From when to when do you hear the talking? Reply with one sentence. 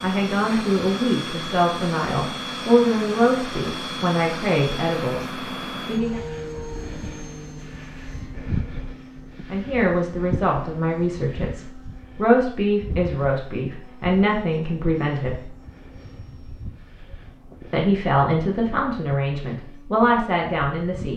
The talking can be heard from 0.0 to 6.2 s, from 9.5 to 15.5 s and from 17.7 to 21.1 s.